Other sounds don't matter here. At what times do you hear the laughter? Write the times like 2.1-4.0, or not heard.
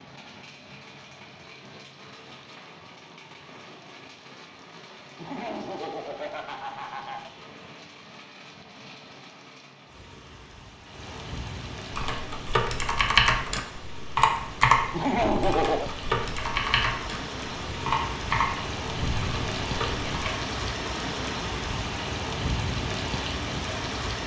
5.2-7.3, 14.9-15.9.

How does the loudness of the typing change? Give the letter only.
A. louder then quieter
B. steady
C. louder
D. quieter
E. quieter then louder
D.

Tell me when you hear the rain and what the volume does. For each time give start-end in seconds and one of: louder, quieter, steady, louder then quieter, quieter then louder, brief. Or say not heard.
0.0-24.2 louder.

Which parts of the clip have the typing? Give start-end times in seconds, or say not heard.
11.9-20.3.